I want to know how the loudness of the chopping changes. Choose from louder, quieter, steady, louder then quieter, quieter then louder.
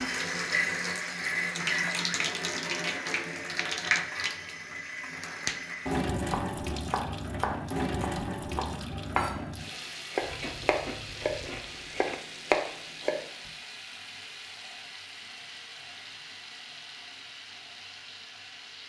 louder.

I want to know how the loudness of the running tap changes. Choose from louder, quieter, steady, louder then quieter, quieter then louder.
quieter.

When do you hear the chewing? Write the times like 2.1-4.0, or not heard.
10.2-12.2.